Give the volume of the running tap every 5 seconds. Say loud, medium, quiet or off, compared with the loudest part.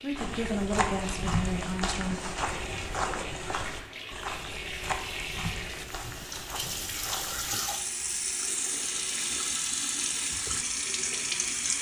medium, loud, loud.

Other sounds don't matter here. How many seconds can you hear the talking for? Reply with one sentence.
You can hear the talking for 2 seconds altogether.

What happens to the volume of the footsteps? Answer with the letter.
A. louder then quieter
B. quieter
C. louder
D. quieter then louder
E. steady
B.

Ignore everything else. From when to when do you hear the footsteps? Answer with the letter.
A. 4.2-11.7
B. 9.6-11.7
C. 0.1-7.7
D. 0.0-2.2
C.